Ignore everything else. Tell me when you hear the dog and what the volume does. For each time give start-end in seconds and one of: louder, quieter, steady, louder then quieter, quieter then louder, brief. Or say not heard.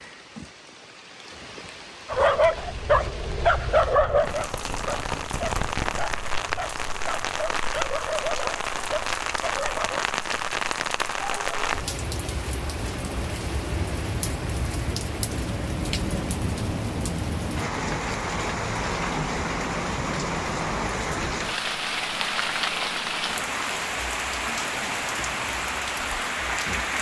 2.0-10.1 quieter.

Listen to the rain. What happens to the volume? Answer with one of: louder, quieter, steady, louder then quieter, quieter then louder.
louder.